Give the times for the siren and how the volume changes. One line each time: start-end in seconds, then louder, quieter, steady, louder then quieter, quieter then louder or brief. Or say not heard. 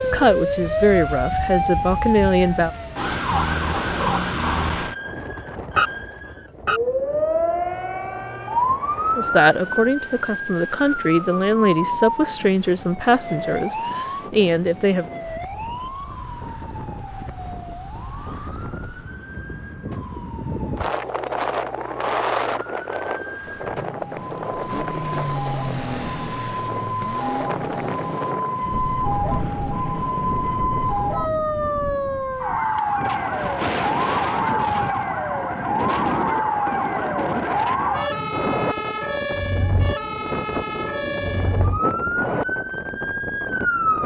0.0-44.0 quieter then louder.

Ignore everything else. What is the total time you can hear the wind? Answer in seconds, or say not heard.
44 s.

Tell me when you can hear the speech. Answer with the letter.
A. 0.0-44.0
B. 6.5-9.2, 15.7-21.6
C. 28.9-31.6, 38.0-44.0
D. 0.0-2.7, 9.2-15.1
D.